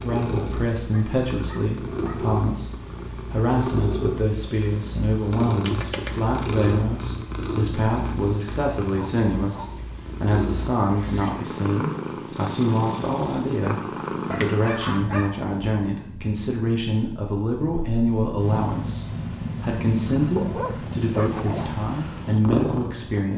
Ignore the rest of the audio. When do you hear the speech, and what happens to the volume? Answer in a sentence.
The speech can be heard from 0.0 to 23.3 s, at a steady volume.